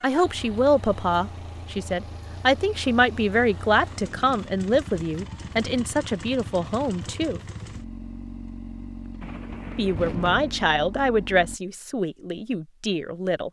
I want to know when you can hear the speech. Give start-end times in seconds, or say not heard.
0.0-7.4, 9.8-13.4.